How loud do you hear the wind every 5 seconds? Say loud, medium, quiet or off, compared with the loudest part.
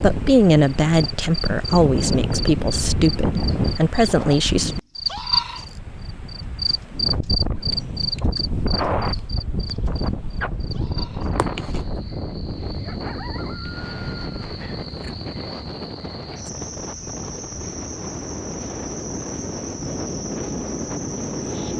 loud, loud, loud, medium, loud.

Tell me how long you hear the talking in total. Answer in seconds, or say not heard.
5 s.